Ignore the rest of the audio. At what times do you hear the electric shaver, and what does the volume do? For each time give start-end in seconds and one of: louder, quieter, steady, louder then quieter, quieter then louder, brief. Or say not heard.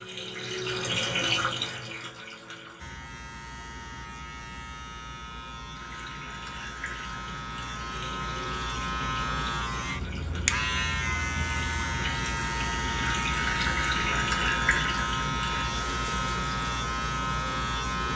2.8-18.1 louder.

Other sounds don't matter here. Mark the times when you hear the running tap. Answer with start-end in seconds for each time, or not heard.
0.0-3.0, 5.7-18.1.